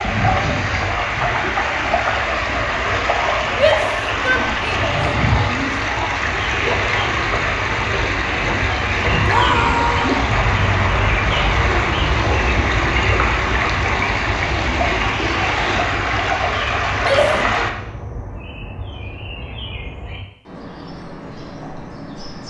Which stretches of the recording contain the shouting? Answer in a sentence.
The shouting can be heard from 3.5 to 5.8 s, from 9.2 to 10.2 s and from 17.0 to 17.6 s.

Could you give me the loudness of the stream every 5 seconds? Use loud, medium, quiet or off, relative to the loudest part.
loud, loud, loud, loud, off.